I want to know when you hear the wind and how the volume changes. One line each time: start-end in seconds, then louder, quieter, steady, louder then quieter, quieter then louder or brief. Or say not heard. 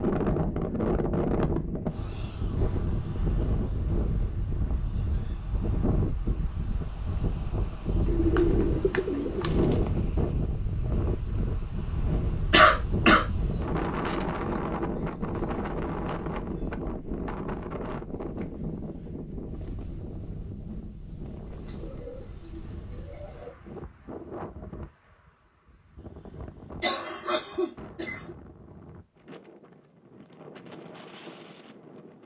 0.0-32.2 quieter.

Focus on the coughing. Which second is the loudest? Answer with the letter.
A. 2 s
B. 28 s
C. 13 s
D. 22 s
C.